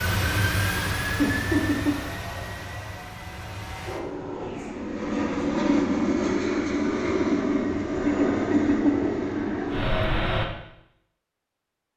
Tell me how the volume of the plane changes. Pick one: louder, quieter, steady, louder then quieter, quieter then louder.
quieter then louder.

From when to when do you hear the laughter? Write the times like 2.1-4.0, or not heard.
1.1-1.9, 8.1-9.1.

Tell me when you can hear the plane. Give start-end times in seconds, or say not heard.
0.0-10.4.